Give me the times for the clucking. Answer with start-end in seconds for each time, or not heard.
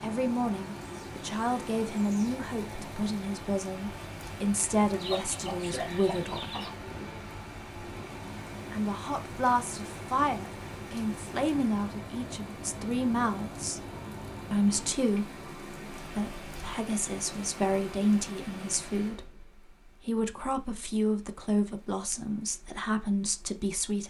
4.9-6.7.